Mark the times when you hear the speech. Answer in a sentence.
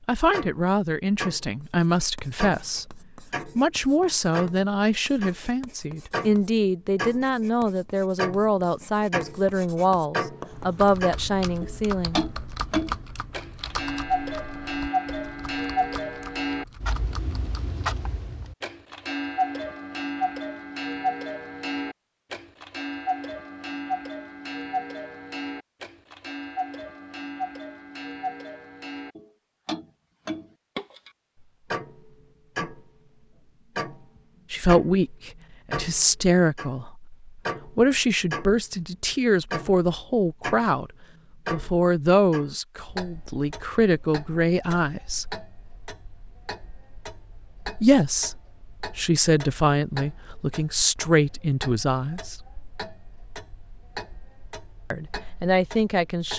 The speech can be heard from 0.1 to 12.2 s, from 34.5 to 40.9 s, from 41.5 to 45.4 s, from 47.8 to 52.4 s and from 54.9 to 56.3 s.